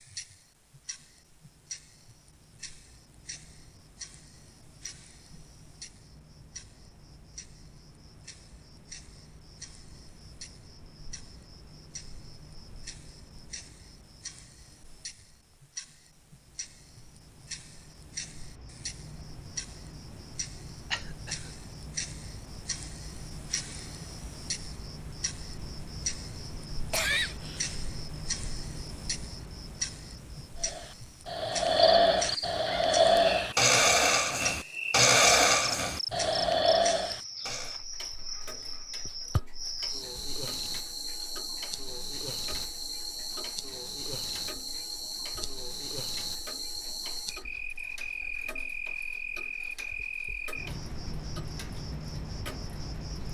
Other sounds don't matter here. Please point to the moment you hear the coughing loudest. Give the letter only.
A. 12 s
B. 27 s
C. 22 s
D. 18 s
B.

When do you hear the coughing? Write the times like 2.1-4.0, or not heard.
20.9-21.5, 26.9-27.8.